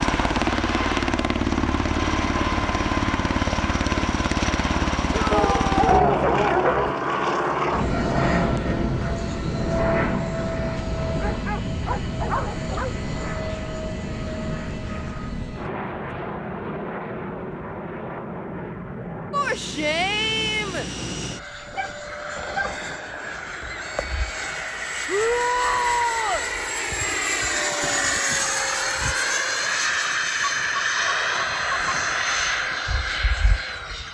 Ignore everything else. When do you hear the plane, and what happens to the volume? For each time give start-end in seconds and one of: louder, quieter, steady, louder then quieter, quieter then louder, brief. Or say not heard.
0.0-34.0 quieter then louder.